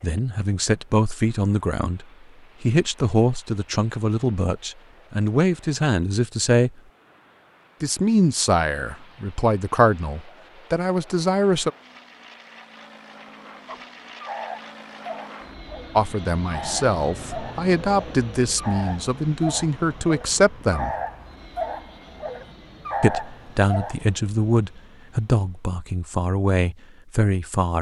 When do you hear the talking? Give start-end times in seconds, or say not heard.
0.0-6.7, 7.8-11.7, 15.9-20.9, 23.0-27.7.